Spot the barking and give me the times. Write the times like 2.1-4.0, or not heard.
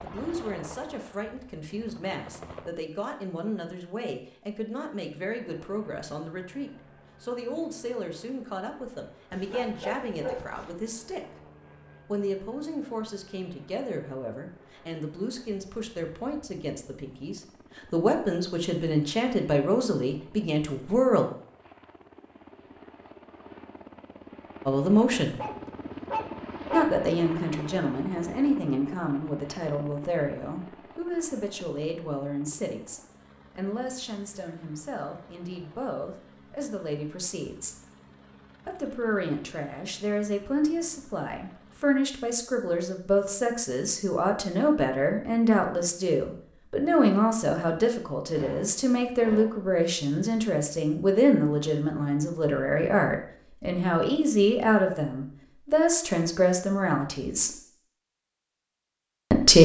9.3-10.7, 25.4-26.9, 48.3-49.6.